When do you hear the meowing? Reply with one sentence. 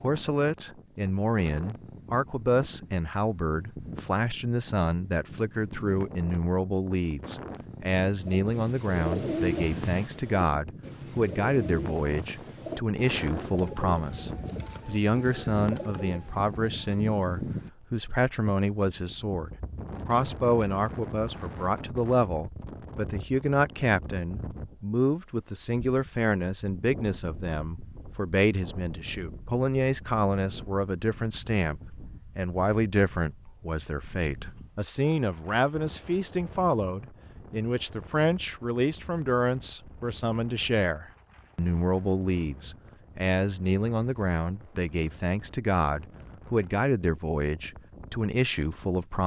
You can't hear the meowing here.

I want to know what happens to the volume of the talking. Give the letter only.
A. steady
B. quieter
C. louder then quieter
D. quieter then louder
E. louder
A.